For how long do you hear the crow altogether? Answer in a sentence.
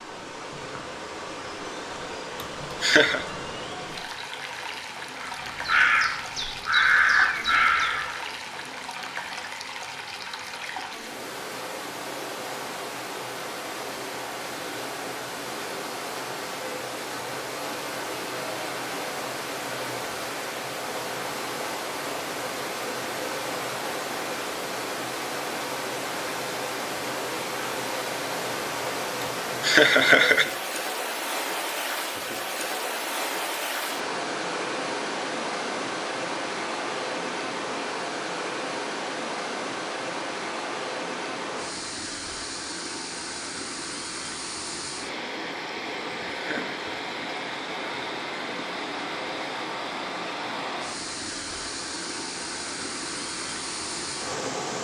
You can hear the crow for 3 seconds altogether.